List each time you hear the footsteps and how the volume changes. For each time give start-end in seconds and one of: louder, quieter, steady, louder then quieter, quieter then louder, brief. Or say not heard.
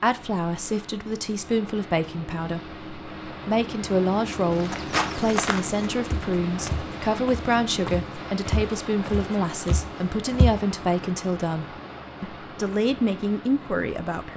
4.5-11.2 quieter then louder.